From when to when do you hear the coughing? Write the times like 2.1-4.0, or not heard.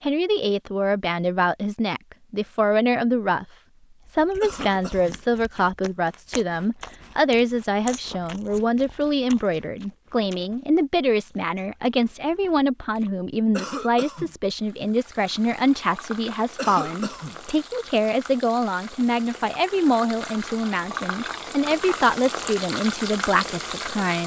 4.4-5.2, 13.5-14.3, 16.6-17.4.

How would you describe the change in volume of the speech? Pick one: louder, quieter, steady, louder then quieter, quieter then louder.
steady.